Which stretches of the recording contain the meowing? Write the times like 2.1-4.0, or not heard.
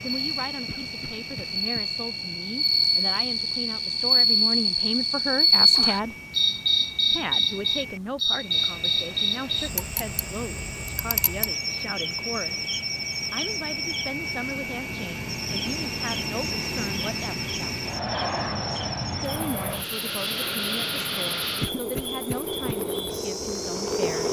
not heard.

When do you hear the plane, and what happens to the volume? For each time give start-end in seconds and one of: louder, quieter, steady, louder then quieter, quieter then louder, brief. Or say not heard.
0.0-24.2 louder.